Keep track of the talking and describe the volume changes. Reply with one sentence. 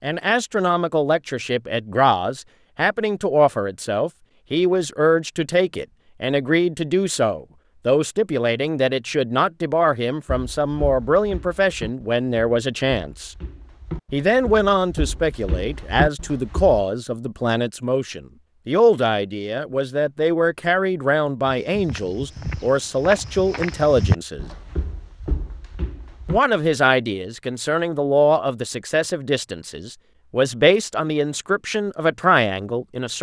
The loudness of the talking stays about the same.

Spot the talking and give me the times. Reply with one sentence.
The talking can be heard from 0.0 to 13.3 s, from 14.1 to 24.5 s and from 26.2 to 33.1 s.